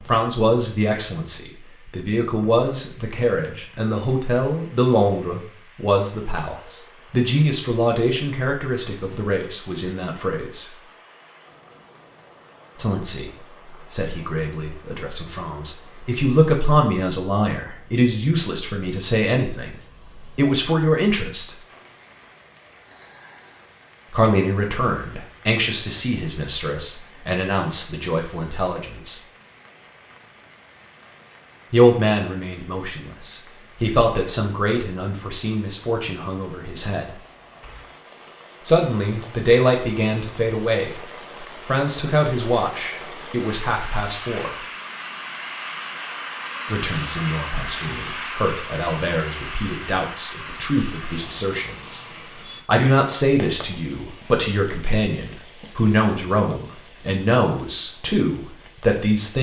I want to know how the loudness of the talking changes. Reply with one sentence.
The volume of the talking stays about the same.